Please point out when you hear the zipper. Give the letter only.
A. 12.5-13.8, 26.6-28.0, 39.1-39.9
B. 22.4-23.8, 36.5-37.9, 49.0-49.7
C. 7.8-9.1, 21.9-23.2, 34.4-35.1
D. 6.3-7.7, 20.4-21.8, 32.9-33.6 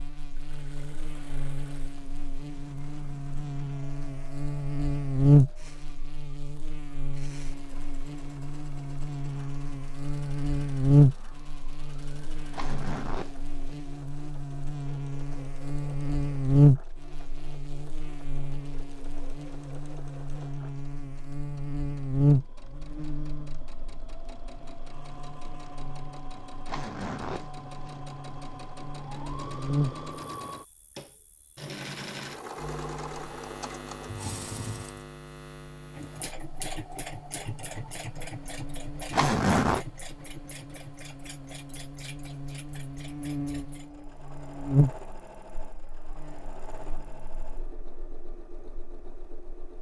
A.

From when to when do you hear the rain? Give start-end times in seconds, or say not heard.
not heard.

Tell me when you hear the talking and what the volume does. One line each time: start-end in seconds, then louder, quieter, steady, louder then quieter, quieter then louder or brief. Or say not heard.
not heard.